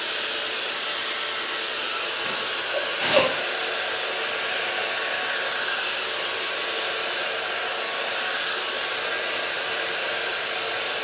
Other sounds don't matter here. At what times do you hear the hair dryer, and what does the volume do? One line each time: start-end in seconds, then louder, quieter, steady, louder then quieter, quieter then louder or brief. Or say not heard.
0.0-10.9 steady.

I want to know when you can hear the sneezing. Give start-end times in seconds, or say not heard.
2.2-3.3.